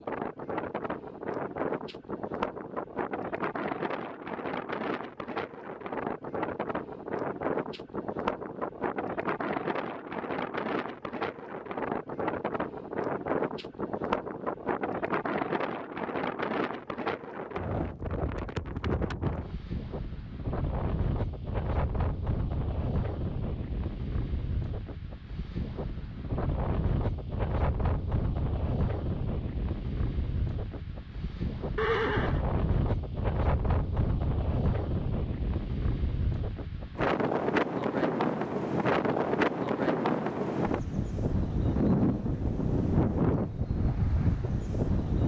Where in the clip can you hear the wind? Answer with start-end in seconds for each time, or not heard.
0.0-45.2.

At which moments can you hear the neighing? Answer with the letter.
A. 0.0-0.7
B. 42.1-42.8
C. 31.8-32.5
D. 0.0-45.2
C.